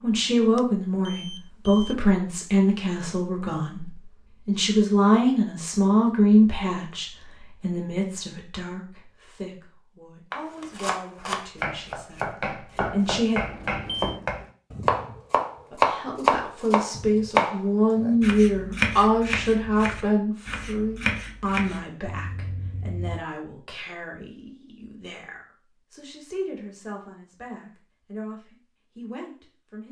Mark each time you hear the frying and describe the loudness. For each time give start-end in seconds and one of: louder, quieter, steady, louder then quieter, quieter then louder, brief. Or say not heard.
not heard.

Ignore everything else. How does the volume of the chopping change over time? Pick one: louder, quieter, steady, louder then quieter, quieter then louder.
louder then quieter.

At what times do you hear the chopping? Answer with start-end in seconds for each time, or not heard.
10.3-21.9.